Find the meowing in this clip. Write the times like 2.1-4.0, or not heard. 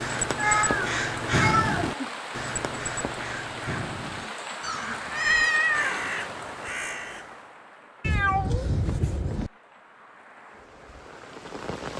0.3-2.0, 4.6-6.1, 8.0-9.5.